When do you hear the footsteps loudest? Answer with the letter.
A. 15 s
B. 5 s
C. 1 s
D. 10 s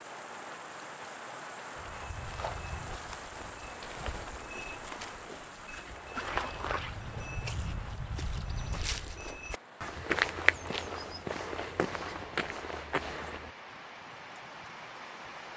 D.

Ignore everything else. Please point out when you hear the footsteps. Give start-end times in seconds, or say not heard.
1.8-13.6.